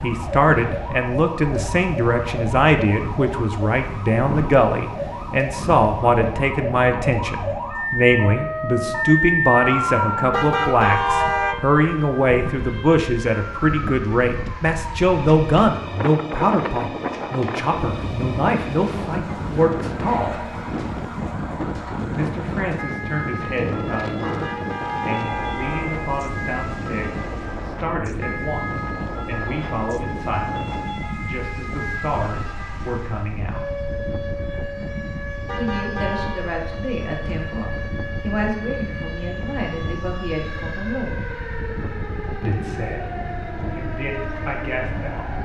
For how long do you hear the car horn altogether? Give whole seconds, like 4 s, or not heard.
4 s.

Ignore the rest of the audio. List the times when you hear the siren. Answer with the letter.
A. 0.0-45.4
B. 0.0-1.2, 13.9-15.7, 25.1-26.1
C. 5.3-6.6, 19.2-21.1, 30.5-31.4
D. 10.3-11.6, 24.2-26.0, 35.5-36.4
A.